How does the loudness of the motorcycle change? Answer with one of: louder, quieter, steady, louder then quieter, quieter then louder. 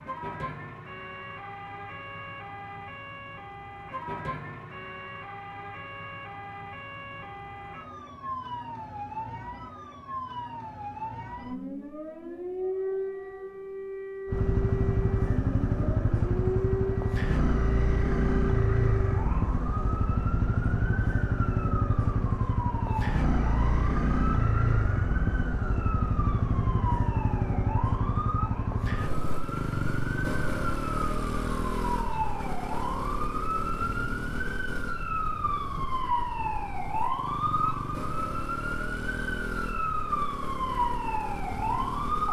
quieter.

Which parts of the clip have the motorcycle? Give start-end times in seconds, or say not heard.
14.2-42.2.